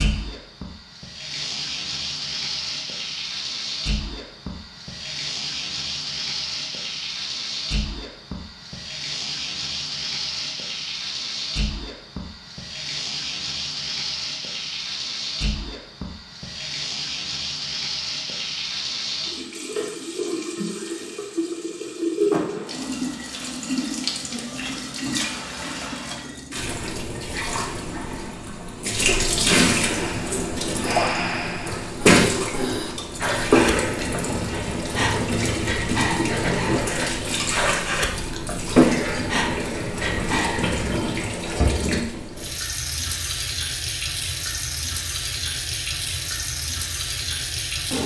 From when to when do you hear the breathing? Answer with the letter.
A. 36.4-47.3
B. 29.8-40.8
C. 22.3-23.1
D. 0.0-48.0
B.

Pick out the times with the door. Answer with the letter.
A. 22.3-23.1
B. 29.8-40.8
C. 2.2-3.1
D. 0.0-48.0
A.